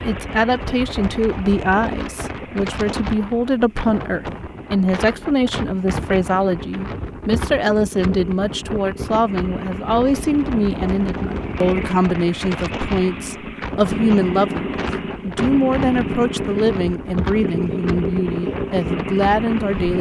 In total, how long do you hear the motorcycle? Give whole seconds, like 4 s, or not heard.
20 s.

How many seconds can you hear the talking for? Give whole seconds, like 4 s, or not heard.
20 s.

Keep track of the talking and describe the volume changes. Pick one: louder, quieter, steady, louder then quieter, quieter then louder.
steady.